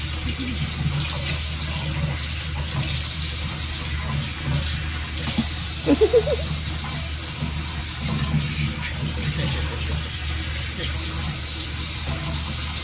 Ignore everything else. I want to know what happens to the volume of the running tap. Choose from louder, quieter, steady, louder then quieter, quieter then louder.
steady.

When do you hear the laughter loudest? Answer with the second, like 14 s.
6 s.